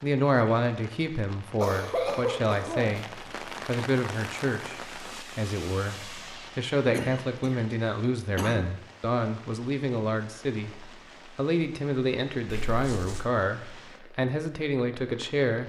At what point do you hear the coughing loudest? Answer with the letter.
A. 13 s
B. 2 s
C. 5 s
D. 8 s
B.